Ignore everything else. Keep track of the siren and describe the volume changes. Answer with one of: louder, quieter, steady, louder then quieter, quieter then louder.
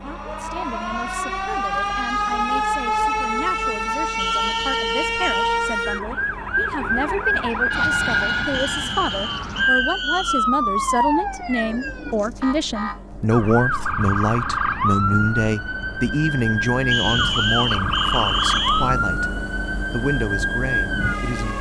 steady.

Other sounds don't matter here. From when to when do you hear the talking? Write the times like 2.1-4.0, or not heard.
0.0-21.5.